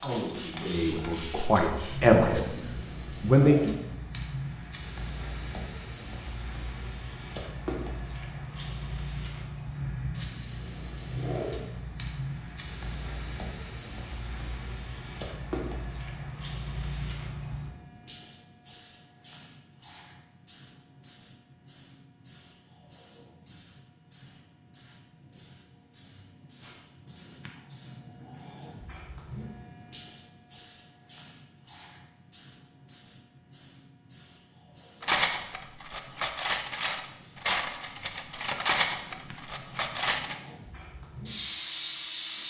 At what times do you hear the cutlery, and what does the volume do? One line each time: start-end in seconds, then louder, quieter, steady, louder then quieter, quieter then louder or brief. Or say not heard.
35.0-40.4 louder then quieter.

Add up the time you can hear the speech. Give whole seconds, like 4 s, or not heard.
4 s.